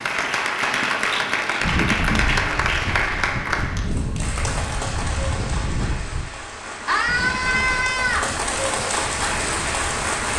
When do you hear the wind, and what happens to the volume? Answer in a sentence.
The wind can be heard from 1.6 to 10.3 s, getting quieter.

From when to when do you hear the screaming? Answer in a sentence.
You can hear the screaming from 6.8 to 8.3 s.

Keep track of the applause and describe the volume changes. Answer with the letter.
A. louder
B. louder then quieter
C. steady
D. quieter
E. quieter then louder
E.